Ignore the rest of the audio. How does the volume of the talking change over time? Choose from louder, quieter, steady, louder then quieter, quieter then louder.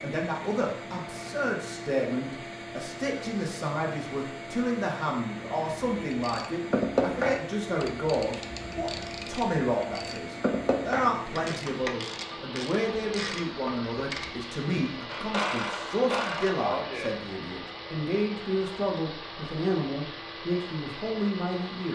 steady.